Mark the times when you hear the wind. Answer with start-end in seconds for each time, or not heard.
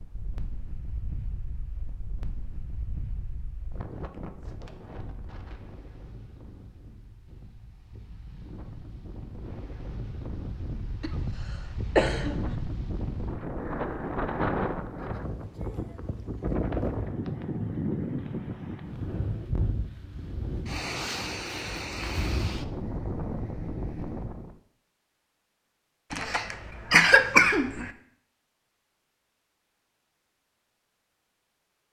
0.0-24.6.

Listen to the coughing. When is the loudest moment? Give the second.
27 s.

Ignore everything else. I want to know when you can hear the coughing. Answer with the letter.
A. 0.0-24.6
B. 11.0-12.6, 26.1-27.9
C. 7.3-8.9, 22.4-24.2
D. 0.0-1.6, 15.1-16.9
B.